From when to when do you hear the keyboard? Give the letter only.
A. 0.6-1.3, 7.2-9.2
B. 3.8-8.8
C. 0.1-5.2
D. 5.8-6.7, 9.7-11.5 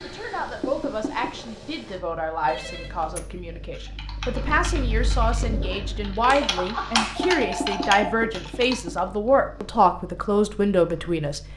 B.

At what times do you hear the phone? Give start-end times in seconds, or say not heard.
2.5-3.3, 6.2-8.1.